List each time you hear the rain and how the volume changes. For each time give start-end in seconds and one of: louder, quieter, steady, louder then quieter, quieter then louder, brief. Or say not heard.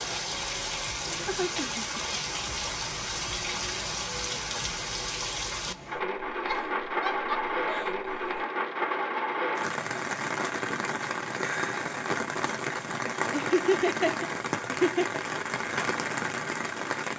0.0-17.1 steady.